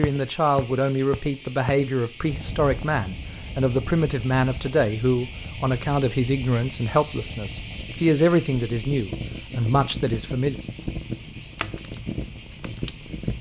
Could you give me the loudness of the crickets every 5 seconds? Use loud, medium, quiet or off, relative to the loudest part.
loud, loud, medium.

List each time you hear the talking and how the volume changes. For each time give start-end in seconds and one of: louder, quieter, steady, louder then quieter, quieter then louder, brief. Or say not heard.
0.0-10.6 steady.